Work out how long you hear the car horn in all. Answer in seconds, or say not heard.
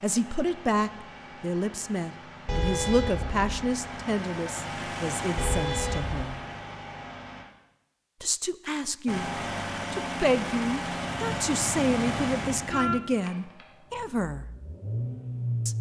4 s.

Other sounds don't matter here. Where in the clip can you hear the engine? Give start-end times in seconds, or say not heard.
0.0-7.5, 9.1-15.7.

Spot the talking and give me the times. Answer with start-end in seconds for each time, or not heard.
0.0-6.4, 8.2-9.3, 9.9-14.4.